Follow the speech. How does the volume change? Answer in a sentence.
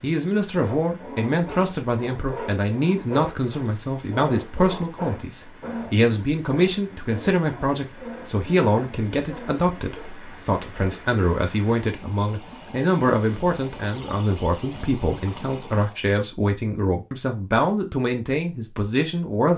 The loudness of the speech stays about the same.